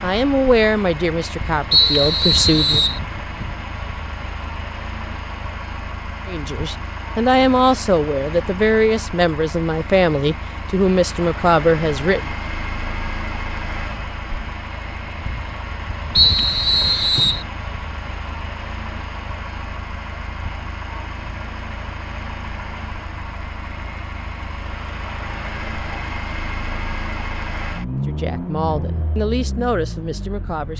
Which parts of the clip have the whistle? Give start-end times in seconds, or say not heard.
1.7-3.0, 16.1-17.4.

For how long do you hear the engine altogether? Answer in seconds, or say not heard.
31 s.